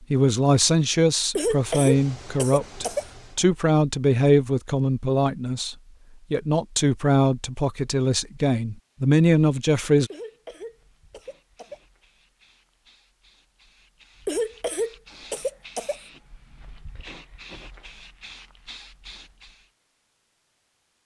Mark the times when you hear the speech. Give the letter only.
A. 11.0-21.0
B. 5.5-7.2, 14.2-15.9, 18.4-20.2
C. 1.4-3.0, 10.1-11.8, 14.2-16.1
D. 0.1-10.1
D.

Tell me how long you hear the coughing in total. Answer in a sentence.
You can hear the coughing for 5 seconds altogether.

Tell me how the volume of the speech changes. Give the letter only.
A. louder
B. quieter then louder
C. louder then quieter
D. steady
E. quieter
D.